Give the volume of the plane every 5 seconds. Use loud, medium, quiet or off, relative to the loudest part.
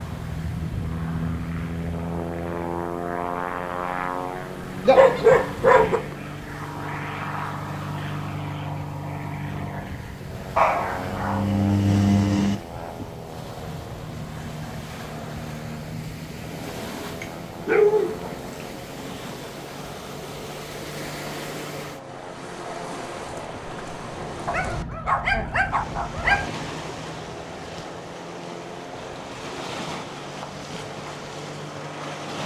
loud, loud, medium, medium, medium, medium, medium.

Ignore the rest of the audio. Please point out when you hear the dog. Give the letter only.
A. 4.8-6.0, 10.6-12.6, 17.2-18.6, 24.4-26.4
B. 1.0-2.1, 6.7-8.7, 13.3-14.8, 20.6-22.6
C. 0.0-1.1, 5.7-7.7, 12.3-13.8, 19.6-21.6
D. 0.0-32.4
A.